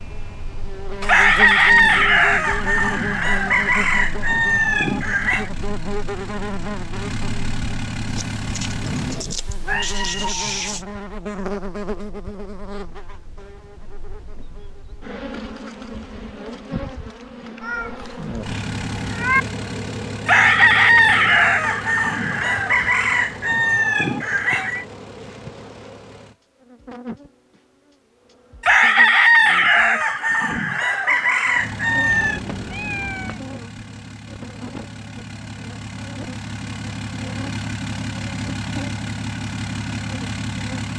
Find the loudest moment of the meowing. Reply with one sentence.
The volume of the meowing peaks at 19 seconds.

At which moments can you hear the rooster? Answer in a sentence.
You can hear the rooster from 1.1 to 5.5 s, from 20.2 to 24.9 s and from 28.6 to 32.4 s.